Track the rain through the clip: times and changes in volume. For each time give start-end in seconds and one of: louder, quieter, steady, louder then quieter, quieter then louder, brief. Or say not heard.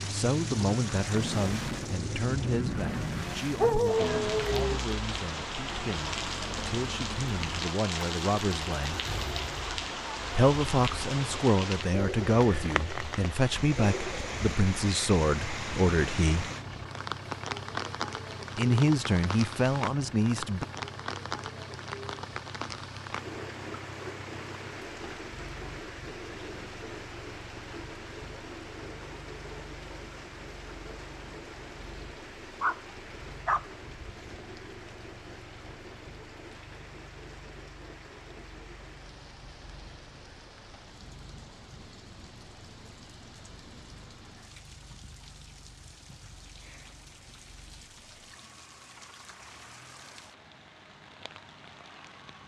0.0-52.4 quieter.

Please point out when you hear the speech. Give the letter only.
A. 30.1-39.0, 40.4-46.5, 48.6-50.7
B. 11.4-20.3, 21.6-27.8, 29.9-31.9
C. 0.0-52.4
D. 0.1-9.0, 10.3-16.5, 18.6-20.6
D.